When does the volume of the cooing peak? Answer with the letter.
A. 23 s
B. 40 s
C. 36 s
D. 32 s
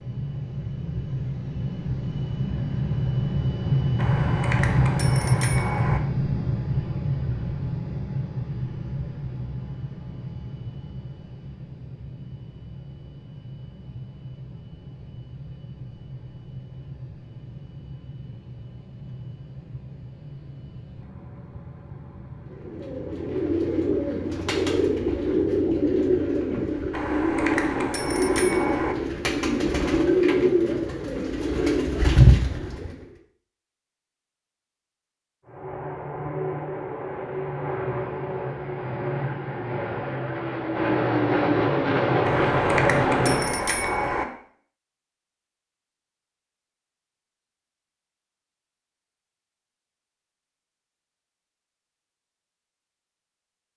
D.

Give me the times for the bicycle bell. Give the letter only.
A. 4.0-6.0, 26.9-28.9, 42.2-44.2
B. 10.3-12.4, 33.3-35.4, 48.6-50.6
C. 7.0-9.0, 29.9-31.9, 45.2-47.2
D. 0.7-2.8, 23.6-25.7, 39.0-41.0
A.